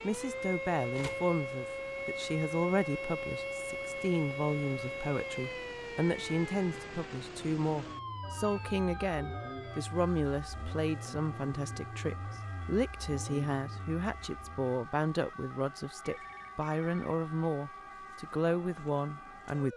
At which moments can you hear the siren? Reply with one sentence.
The siren can be heard from 0.0 to 19.7 s.